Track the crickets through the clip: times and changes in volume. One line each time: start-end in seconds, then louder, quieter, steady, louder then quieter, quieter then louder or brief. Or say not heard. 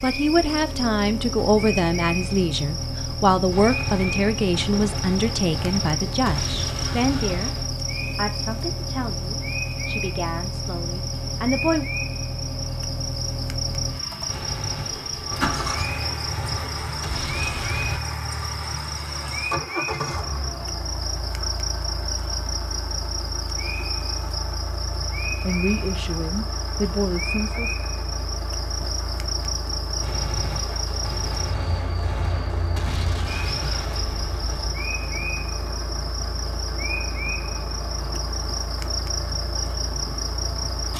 0.0-40.9 steady.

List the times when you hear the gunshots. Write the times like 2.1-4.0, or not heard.
3.5-7.8, 14.2-18.0, 30.0-34.8.